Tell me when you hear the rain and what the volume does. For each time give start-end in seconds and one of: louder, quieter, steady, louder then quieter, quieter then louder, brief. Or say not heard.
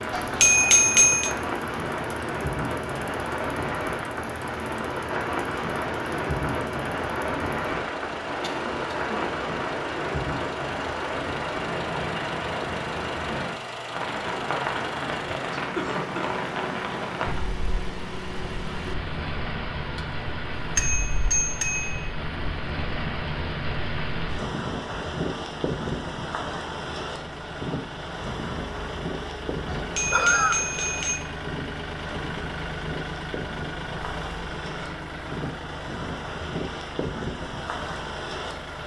0.0-38.8 quieter.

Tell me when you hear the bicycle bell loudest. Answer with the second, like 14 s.
1 s.